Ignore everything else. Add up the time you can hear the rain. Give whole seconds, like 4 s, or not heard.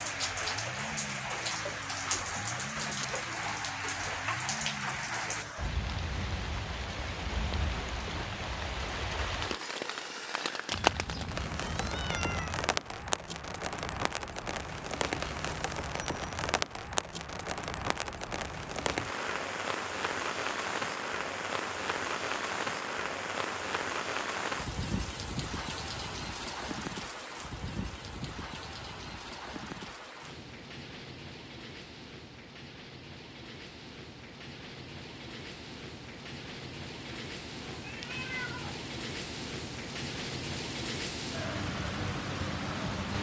43 s.